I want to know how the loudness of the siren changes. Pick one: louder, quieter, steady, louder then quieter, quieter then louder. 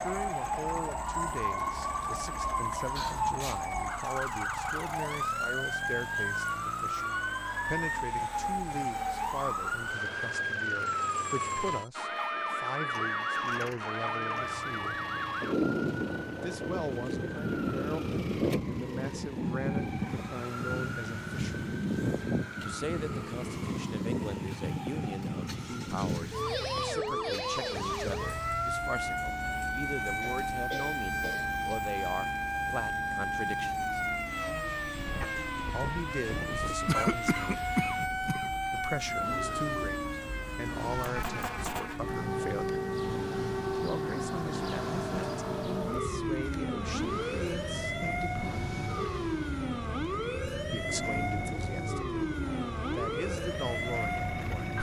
steady.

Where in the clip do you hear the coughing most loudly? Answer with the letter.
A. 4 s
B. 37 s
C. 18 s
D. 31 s
B.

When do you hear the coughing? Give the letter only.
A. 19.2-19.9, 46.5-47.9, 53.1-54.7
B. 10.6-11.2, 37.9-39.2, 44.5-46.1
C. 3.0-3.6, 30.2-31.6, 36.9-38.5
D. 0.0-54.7
C.